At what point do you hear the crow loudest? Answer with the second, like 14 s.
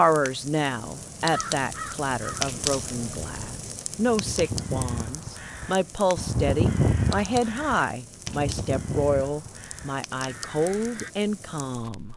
7 s.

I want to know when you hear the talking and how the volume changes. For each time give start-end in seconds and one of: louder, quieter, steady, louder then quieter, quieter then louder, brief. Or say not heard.
0.0-12.1 steady.